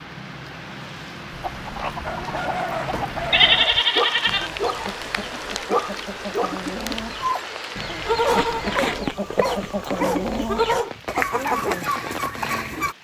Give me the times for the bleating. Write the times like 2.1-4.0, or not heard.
3.3-4.5, 8.1-10.9.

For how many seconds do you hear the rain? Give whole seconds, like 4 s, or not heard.
13 s.